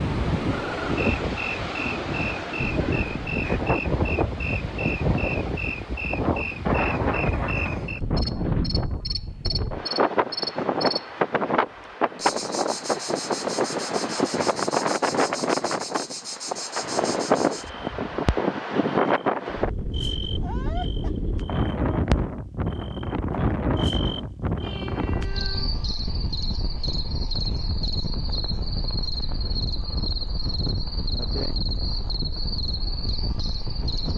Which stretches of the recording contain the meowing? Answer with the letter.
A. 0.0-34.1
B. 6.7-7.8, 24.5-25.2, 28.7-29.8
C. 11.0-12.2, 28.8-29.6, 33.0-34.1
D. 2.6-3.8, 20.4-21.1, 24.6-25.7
D.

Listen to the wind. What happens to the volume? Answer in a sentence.
The loudness of the wind goes down.